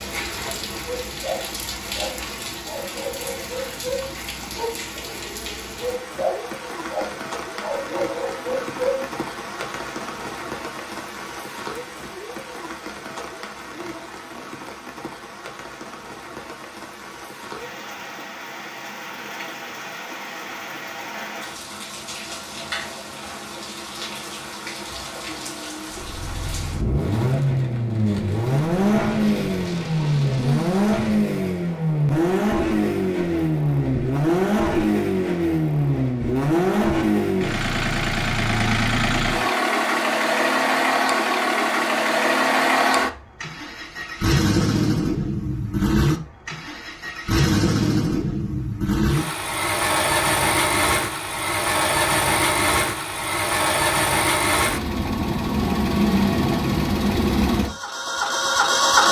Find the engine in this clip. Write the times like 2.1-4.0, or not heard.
25.9-59.0.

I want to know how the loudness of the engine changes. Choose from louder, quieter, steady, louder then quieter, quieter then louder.
steady.